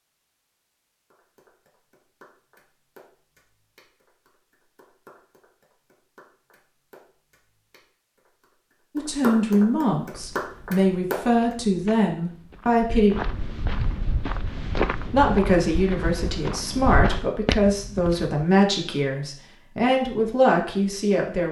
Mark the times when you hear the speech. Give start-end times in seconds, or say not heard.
8.9-13.2, 15.1-21.4.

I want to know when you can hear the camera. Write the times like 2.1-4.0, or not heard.
not heard.